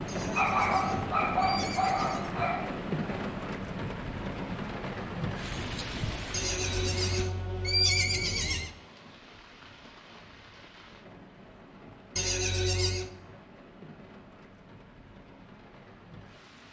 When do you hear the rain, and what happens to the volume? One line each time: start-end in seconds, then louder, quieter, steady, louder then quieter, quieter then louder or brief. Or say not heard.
0.0-16.6 quieter.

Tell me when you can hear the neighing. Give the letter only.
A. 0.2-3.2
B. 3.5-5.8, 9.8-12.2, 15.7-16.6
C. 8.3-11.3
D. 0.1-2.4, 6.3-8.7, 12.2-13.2
D.